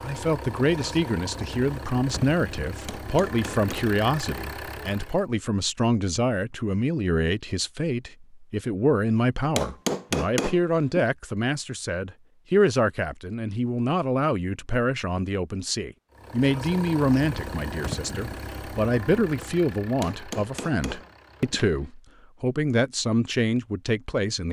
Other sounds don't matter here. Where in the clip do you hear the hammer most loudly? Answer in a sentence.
The volume of the hammer peaks at 10 seconds.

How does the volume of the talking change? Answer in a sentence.
The volume of the talking stays about the same.